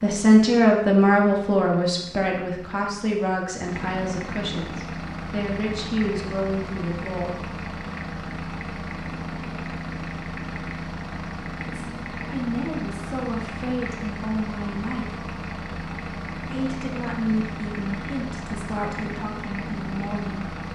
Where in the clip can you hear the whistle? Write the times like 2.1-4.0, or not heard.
not heard.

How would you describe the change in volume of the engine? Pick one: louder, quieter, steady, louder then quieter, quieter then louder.
louder.